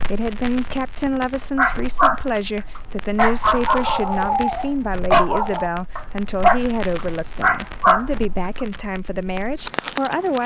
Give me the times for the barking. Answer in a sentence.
You can hear the barking from 1.6 to 8.7 s.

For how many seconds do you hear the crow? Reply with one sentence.
You can't hear the crow here.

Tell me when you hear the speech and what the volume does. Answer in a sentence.
The speech can be heard from 0.0 to 10.4 s, at a steady volume.